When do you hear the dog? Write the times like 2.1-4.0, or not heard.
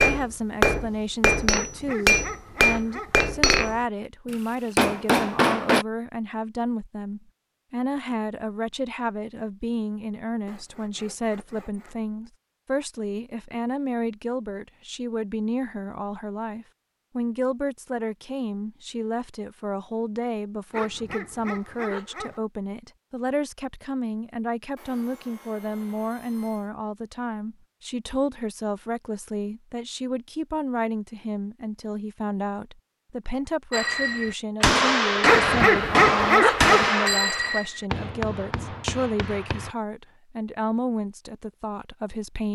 1.5-3.1, 20.7-22.4, 35.2-36.9.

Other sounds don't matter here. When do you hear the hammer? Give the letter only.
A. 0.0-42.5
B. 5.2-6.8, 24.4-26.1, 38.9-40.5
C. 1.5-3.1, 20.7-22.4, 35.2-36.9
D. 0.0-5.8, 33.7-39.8
D.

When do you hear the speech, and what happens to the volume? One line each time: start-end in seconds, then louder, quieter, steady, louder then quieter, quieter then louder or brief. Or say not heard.
0.0-42.5 steady.